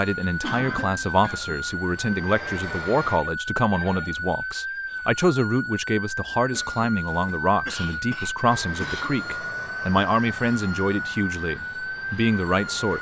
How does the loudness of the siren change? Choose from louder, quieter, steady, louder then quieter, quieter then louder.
steady.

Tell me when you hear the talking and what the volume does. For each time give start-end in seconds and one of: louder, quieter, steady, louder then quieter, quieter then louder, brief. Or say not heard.
0.0-12.9 steady.